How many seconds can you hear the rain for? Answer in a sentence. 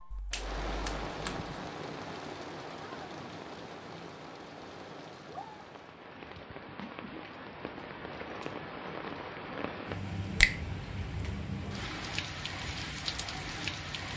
You can hear the rain for 14 seconds altogether.